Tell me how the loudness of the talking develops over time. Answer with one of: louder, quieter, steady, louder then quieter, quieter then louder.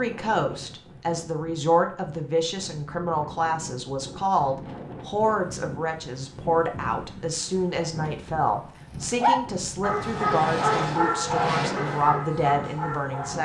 steady.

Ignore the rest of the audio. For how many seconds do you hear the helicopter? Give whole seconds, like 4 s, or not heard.
2 s.